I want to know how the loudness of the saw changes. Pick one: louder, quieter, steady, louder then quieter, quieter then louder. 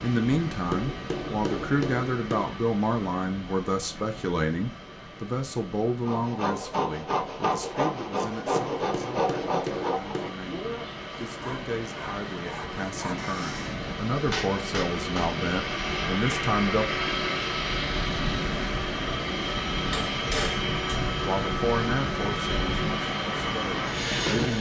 quieter.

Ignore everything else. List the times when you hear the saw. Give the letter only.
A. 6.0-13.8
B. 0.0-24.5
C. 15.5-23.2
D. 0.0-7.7
A.